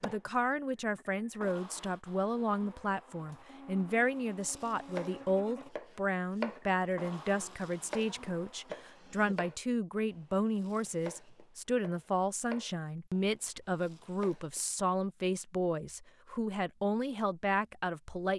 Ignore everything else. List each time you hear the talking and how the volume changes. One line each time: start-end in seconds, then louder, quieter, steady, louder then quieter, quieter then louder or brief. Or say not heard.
0.0-18.3 steady.